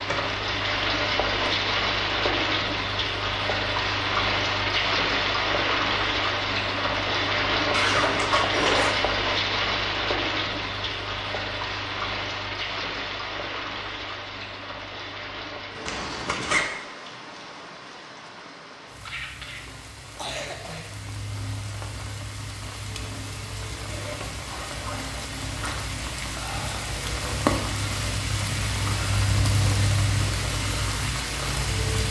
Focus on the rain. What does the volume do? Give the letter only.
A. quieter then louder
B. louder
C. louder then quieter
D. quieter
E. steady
A.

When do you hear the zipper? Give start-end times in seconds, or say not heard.
7.7-8.9, 15.8-16.6, 23.9-25.9.